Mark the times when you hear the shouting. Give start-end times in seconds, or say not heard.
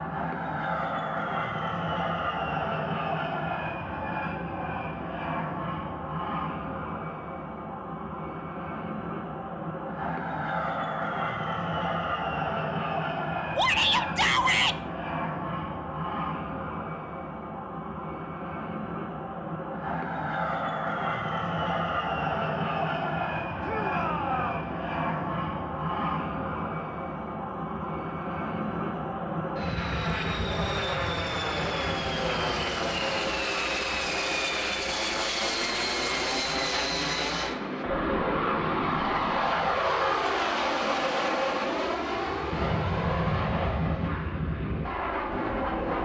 13.6-14.8, 23.6-24.6.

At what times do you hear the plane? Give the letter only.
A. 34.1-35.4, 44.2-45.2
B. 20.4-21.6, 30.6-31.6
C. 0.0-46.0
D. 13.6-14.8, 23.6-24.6
C.